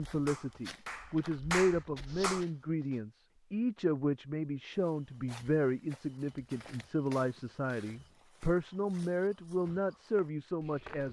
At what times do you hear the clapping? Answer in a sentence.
The clapping can be heard from 0.1 to 2.5 s.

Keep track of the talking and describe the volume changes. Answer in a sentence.
The volume of the talking stays about the same.